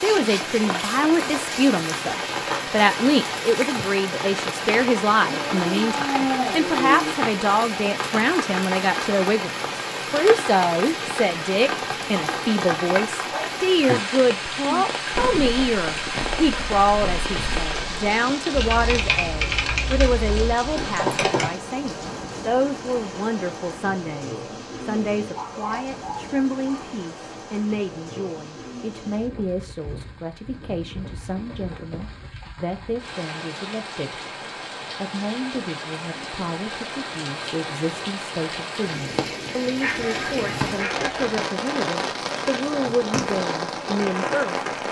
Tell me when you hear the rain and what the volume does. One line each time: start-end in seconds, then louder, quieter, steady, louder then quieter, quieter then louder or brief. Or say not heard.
0.0-44.8 quieter then louder.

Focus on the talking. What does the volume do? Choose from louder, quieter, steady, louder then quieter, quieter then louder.
quieter.